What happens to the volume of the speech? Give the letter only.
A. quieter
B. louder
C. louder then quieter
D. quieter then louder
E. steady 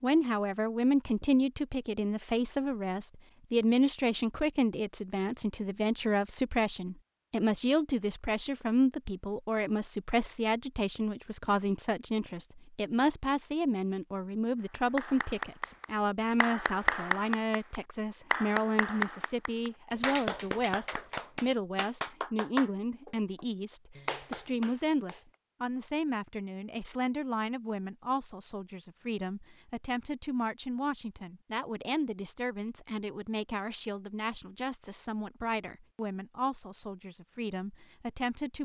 A.